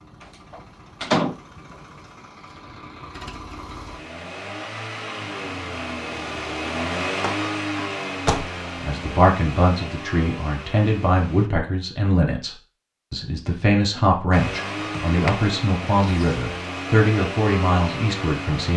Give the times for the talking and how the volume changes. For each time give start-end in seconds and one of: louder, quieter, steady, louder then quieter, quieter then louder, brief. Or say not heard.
8.8-18.7 steady.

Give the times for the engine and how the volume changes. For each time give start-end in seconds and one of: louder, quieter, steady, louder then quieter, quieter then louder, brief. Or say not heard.
0.0-11.5 louder then quieter
14.3-18.7 steady.